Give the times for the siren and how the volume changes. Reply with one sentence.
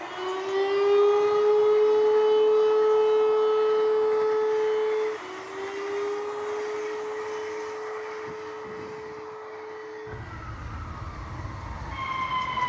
The siren can be heard from 0.0 to 12.6 s, getting quieter.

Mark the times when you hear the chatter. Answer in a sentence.
You can't hear the chatter here.